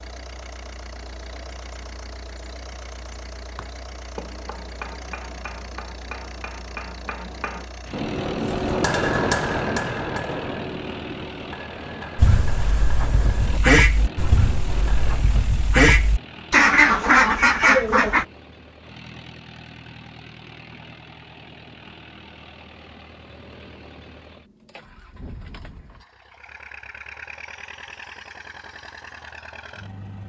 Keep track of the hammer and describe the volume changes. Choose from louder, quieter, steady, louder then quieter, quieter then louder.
louder then quieter.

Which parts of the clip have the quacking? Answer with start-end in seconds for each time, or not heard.
12.2-18.2.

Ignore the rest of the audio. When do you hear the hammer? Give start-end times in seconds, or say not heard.
3.5-15.2.